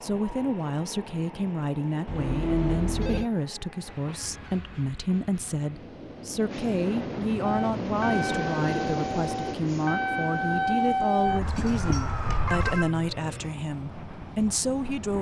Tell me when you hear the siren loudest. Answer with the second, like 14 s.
11 s.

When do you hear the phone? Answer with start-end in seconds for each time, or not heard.
2.0-3.3, 11.4-12.9.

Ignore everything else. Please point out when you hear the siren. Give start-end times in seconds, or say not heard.
7.4-12.8.